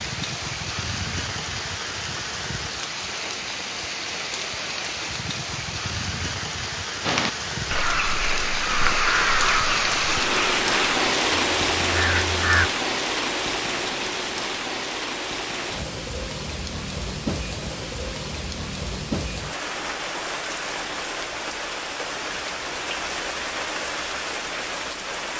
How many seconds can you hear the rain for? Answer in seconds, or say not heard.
25 s.